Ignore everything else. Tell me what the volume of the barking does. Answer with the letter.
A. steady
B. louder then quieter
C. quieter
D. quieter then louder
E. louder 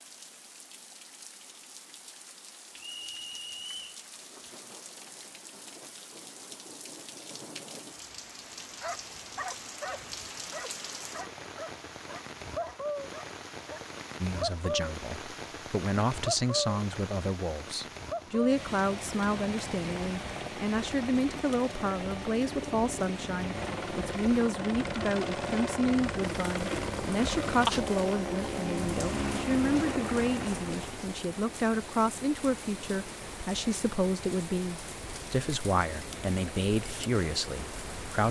C.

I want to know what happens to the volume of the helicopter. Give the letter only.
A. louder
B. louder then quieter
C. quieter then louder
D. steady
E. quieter
A.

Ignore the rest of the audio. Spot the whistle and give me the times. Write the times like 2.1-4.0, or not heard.
2.8-4.0.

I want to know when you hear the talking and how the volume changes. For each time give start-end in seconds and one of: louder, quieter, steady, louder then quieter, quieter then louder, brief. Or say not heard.
14.2-38.2 steady.